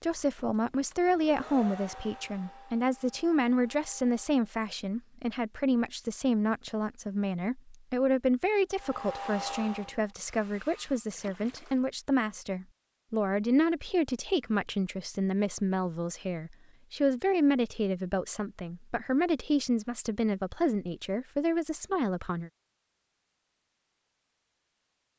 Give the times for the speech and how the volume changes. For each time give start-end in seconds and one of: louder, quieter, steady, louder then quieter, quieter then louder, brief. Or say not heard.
0.0-22.5 steady.